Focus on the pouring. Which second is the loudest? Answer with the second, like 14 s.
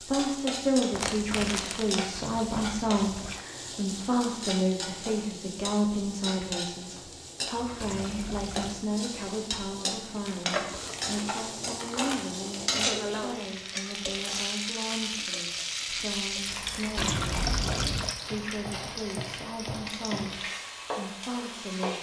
17 s.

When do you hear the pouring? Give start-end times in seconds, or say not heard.
2.1-3.5, 7.8-8.9, 16.9-18.1.